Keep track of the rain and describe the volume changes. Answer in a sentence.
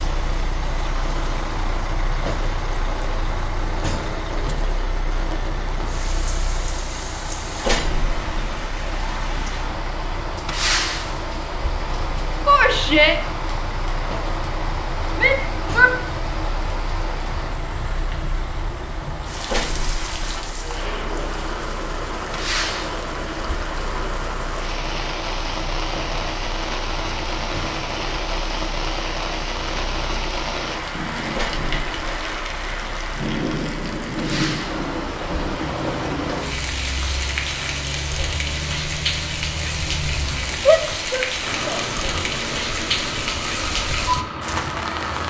The volume of the rain goes up.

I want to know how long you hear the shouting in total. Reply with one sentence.
The shouting can be heard for 3 seconds in total.